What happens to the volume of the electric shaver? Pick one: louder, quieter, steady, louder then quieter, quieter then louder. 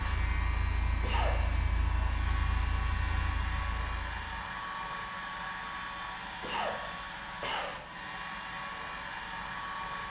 steady.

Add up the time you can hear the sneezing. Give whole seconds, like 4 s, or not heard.
2 s.